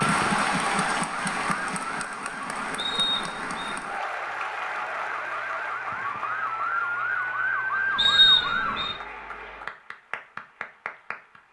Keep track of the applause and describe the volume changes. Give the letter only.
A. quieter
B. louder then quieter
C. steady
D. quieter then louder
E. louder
A.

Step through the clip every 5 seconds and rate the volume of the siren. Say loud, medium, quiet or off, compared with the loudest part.
medium, loud, off.